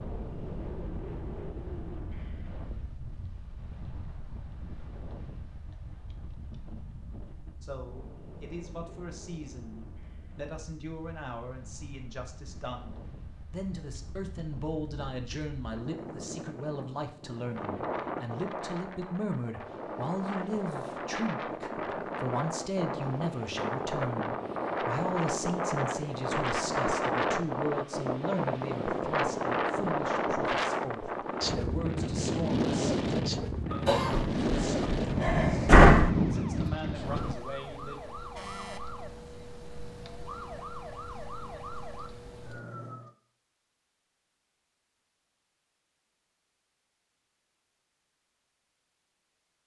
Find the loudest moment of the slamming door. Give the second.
36 s.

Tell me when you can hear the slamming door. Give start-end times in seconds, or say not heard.
34.1-36.1.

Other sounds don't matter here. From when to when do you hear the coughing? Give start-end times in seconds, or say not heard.
33.7-34.2.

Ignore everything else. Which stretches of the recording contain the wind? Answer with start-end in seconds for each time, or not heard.
0.0-37.4.